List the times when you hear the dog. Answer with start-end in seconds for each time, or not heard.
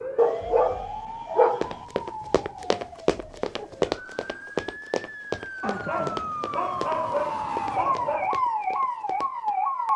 0.1-1.9, 5.6-8.3.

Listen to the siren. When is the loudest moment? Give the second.
8 s.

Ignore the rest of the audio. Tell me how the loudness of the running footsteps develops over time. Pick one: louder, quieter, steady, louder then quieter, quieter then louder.
quieter.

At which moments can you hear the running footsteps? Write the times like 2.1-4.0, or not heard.
1.6-9.5.